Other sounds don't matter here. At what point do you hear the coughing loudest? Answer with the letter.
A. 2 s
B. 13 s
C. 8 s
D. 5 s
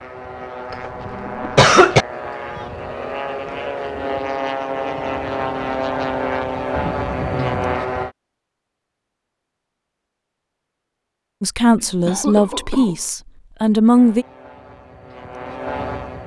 A.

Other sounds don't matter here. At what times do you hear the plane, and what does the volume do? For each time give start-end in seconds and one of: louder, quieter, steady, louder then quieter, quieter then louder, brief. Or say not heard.
0.0-8.1 louder
13.9-16.2 brief.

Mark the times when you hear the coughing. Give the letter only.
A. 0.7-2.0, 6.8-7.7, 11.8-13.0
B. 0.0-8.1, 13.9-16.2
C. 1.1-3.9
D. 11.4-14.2
A.